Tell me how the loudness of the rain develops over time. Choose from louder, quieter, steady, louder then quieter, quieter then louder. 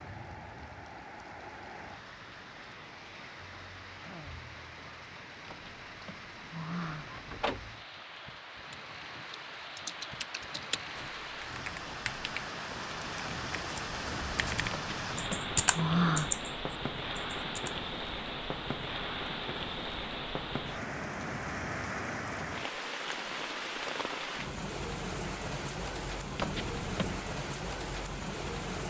louder.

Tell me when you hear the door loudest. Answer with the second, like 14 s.
16 s.